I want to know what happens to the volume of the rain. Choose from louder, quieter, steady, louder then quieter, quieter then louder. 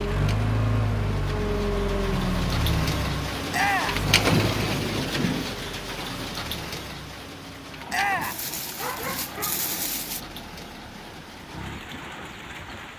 louder then quieter.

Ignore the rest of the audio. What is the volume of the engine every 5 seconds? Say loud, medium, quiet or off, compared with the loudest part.
loud, quiet, quiet.